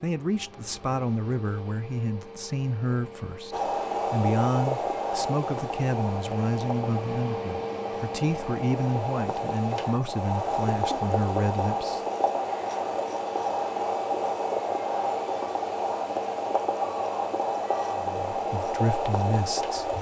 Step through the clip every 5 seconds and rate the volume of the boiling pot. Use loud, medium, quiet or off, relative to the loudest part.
loud, medium, loud, loud.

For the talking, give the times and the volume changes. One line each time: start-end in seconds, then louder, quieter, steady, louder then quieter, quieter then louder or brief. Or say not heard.
0.0-12.0 steady
17.9-19.9 brief.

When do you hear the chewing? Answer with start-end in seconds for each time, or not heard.
not heard.